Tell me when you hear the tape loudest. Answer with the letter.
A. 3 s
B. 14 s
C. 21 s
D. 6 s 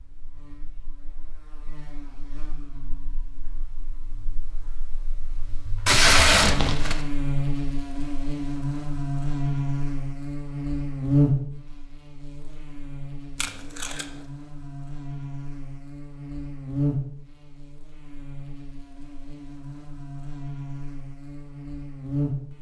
D.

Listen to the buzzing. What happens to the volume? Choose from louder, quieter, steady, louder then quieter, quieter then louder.
louder then quieter.